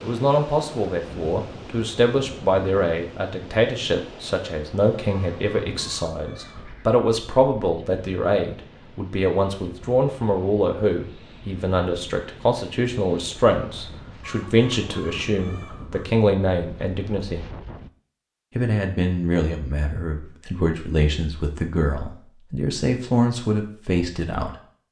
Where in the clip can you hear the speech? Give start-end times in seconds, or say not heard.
0.0-17.5, 18.6-24.6.